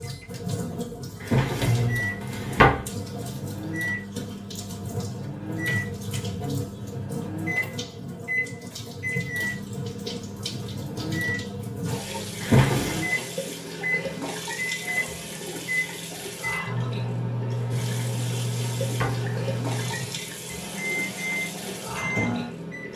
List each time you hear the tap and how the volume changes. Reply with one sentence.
The tap can be heard from 0.0 to 22.9 s, at a steady volume.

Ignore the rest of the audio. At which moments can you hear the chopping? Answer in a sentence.
The chopping can't be heard in this clip.